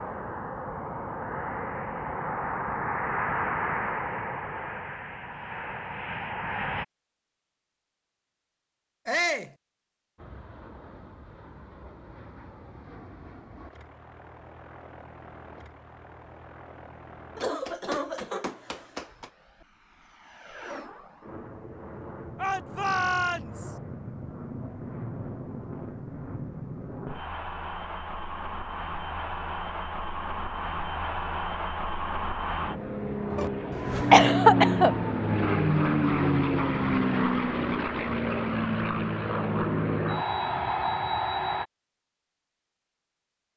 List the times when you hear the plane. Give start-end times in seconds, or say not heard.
0.0-6.8, 10.2-41.6.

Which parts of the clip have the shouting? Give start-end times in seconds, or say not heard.
9.1-9.5, 22.4-23.8.